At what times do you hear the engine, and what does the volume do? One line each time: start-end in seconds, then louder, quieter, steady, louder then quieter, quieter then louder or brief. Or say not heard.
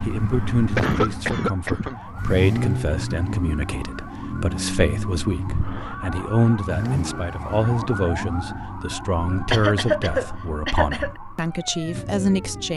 0.0-12.7 quieter.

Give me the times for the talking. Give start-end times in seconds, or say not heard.
0.0-12.7.